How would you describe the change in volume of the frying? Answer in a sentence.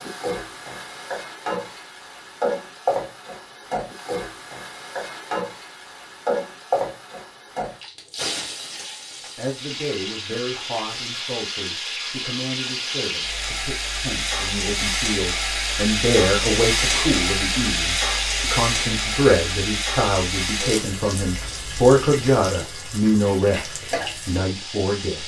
The volume of the frying goes up, then down.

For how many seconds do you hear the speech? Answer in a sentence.
The speech can be heard for 16 seconds in total.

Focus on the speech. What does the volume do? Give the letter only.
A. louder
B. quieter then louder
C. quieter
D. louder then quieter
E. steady
A.